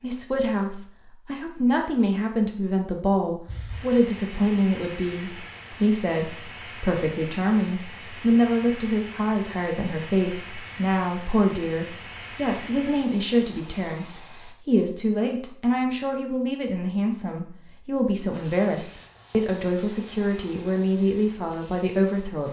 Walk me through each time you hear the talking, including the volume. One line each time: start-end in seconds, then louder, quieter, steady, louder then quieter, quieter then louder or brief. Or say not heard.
0.0-22.4 steady.